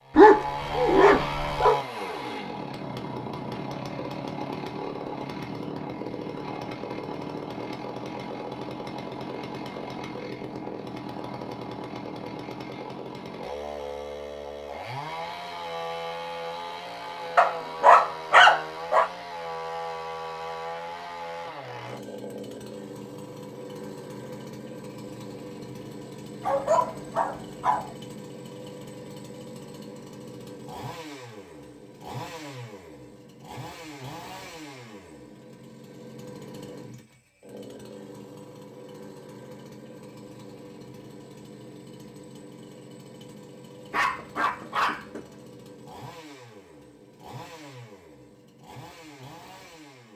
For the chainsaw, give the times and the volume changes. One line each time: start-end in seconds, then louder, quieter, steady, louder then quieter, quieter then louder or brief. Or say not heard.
0.0-50.1 quieter.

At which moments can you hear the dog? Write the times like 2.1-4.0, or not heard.
0.1-1.8, 17.4-19.1, 26.4-27.9, 43.9-45.2.